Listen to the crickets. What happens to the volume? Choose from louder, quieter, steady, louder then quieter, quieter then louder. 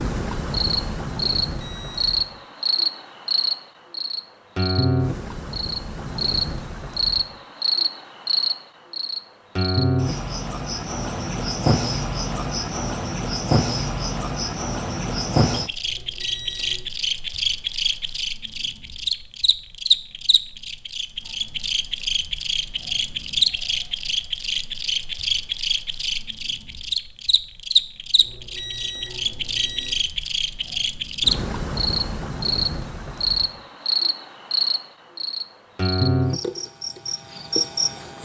steady.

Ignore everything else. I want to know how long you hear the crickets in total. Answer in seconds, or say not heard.
38 s.